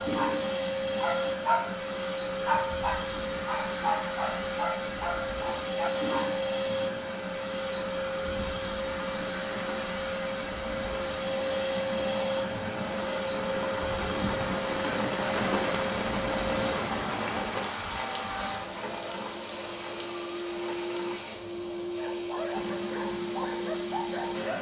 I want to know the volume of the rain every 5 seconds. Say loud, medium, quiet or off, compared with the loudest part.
medium, medium, loud, loud, medium.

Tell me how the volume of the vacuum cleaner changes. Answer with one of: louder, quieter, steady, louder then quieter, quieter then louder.
steady.